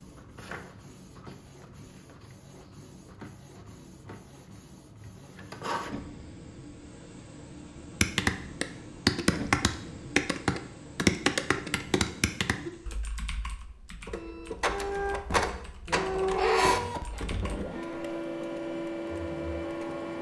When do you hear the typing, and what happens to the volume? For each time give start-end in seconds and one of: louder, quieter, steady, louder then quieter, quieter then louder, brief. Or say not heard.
8.0-17.6 quieter.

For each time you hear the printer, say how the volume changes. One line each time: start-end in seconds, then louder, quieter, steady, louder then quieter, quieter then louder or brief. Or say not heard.
0.0-20.1 louder.